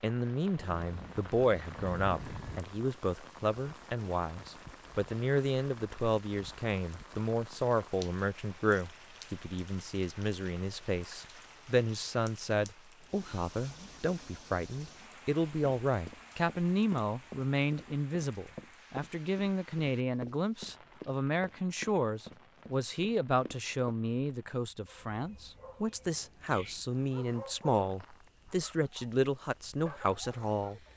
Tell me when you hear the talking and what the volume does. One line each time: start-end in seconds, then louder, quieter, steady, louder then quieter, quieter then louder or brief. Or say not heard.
0.0-30.9 steady.